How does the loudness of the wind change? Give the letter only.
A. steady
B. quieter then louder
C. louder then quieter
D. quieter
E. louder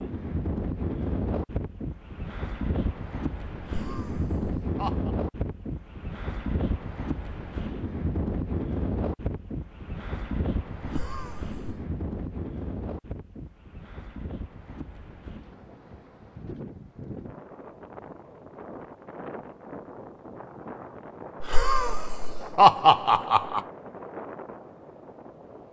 D.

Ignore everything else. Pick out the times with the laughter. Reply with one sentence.
The laughter can be heard from 3.6 to 5.1 s, from 10.8 to 11.8 s and from 21.4 to 23.6 s.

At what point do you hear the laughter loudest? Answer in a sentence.
The volume of the laughter peaks at 23 seconds.